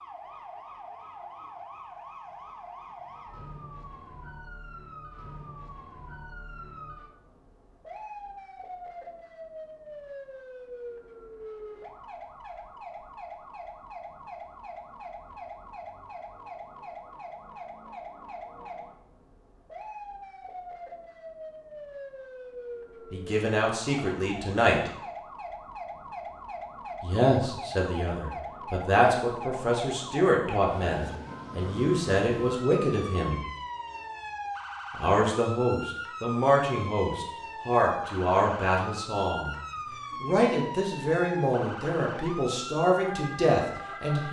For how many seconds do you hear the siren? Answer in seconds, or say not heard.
44 s.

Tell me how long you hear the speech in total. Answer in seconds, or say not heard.
17 s.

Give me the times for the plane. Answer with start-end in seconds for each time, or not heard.
not heard.